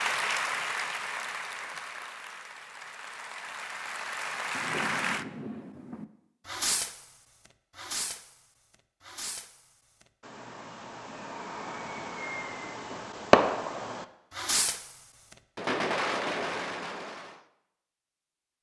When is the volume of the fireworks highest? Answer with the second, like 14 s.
13 s.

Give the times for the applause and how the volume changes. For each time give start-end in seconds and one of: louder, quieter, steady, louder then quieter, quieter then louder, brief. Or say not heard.
0.0-5.2 quieter then louder.